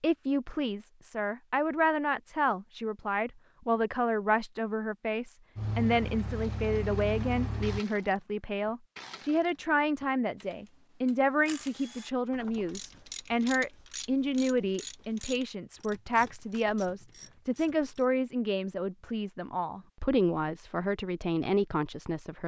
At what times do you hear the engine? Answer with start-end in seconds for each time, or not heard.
5.5-7.8.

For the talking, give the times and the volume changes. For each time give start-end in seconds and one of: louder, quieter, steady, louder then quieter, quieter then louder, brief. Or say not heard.
0.0-22.4 steady.